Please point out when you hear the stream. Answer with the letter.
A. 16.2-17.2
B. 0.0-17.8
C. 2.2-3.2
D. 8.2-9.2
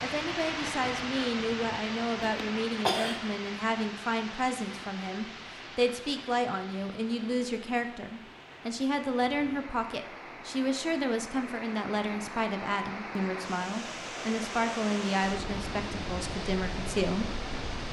B.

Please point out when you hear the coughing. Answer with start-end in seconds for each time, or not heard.
2.2-3.2.